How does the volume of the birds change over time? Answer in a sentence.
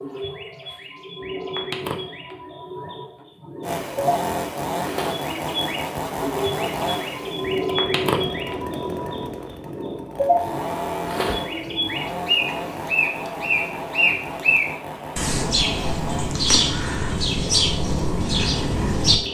The loudness of the birds goes up.